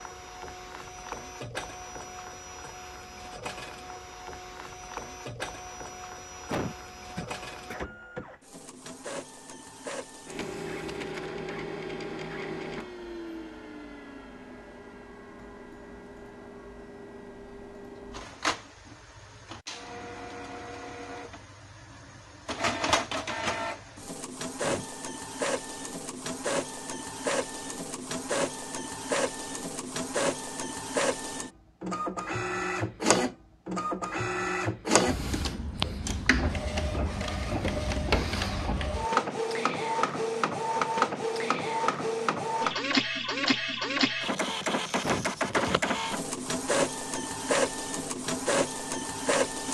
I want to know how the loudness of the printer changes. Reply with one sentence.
The loudness of the printer goes up.